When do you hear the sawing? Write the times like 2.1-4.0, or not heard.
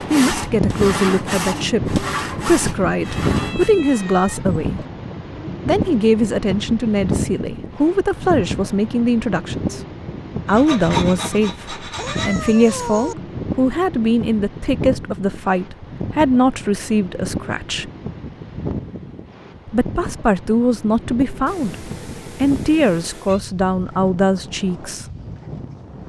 0.0-3.7, 10.4-12.3.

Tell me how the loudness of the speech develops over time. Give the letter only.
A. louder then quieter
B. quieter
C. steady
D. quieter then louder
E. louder
C.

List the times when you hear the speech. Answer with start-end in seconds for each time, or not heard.
0.1-4.8, 5.7-9.8, 10.4-17.9, 19.6-25.1.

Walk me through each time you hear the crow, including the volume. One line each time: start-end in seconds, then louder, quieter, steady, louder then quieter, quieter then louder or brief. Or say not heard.
not heard.